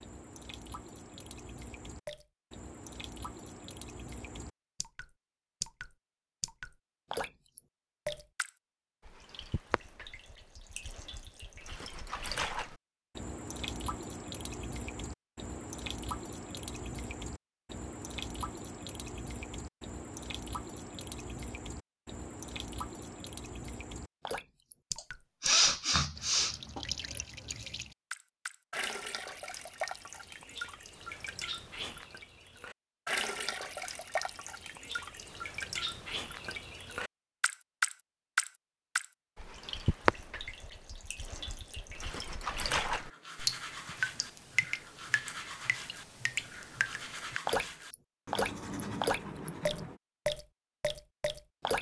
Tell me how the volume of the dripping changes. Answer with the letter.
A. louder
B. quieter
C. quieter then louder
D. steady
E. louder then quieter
A.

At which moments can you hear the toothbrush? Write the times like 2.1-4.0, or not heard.
42.9-50.0.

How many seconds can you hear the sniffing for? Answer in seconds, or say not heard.
2 s.